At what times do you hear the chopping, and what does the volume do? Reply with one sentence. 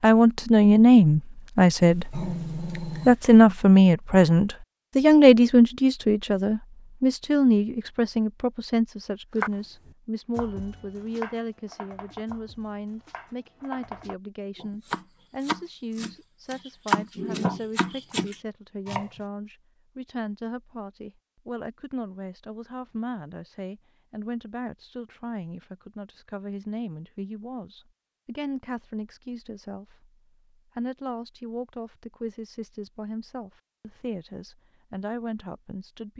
The chopping can be heard from 9.3 to 19.1 s, getting quieter then louder.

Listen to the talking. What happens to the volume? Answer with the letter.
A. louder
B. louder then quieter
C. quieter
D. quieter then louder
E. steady
C.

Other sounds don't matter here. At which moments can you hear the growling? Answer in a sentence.
The growling can be heard from 1.8 to 3.3 s.